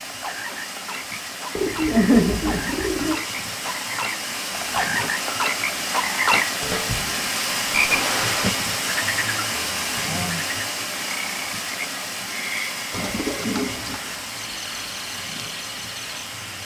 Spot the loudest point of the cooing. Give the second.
2 s.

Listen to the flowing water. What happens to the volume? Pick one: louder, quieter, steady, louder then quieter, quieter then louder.
louder then quieter.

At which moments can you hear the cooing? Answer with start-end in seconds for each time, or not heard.
1.6-3.2, 12.9-13.9.